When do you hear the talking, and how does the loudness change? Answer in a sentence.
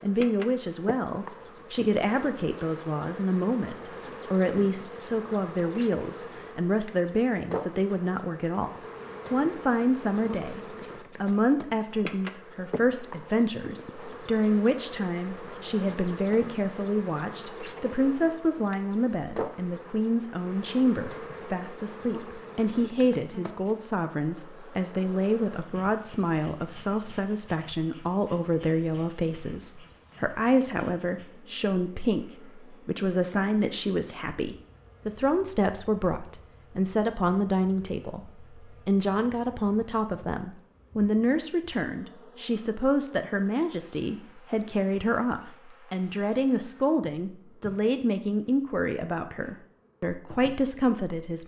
The talking can be heard from 0.0 to 51.4 s, at a steady volume.